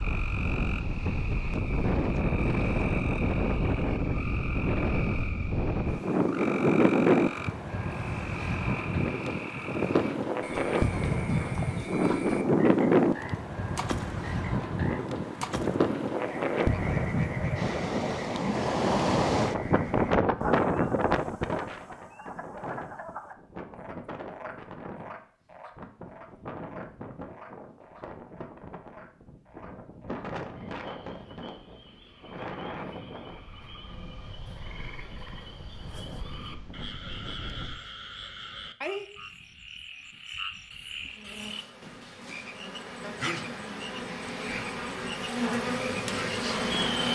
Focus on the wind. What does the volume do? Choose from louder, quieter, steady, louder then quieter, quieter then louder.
quieter.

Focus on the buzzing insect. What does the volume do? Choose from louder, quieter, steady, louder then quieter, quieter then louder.
louder.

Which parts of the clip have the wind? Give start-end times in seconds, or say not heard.
0.0-37.8.